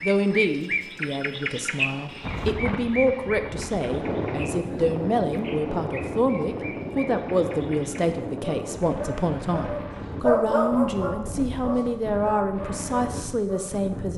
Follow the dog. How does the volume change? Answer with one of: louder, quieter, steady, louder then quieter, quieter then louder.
louder then quieter.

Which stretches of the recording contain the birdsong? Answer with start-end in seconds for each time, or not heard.
0.0-8.1.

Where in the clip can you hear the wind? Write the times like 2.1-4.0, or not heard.
2.2-14.1.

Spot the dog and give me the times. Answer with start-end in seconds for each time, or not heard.
8.4-13.7.